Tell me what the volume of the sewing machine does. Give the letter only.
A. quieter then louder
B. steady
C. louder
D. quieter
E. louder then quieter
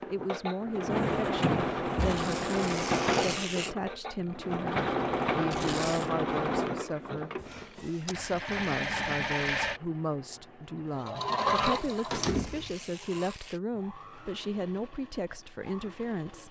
D.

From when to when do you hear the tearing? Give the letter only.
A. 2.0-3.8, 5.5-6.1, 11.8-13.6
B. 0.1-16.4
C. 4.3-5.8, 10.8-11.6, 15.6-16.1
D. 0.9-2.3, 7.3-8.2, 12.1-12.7
A.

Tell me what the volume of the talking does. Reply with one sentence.
The loudness of the talking stays about the same.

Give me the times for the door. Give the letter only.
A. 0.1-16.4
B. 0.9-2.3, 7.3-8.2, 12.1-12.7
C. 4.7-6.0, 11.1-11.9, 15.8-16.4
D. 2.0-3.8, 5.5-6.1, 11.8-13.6
B.